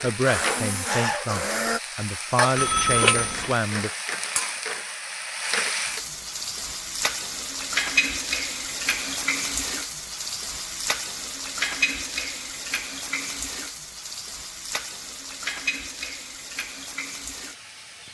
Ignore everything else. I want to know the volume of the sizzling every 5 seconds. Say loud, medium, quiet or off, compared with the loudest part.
loud, loud, loud, medium.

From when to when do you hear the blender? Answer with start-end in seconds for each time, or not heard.
0.1-1.8.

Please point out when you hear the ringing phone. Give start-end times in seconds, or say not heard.
2.5-3.5.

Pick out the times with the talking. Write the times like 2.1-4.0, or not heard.
0.0-3.9.